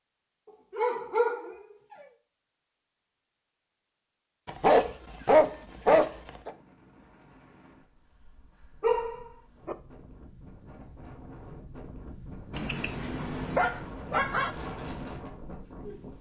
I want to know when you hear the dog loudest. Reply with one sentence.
The volume of the dog peaks at 5 seconds.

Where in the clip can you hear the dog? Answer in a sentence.
The dog can be heard from 0.7 to 1.6 s, from 4.5 to 6.5 s, from 8.8 to 9.8 s and from 12.5 to 14.5 s.